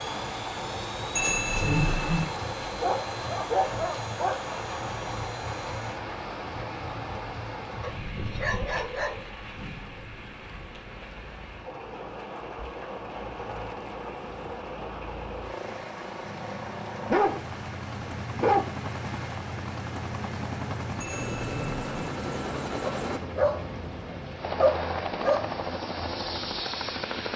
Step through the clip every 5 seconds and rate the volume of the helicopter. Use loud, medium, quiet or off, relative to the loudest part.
medium, quiet, quiet, medium, loud, loud.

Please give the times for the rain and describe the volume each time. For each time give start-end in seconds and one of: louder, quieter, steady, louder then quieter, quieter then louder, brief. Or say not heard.
0.0-27.3 quieter.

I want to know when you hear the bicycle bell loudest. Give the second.
2 s.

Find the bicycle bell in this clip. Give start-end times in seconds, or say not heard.
1.1-2.2, 21.0-22.1.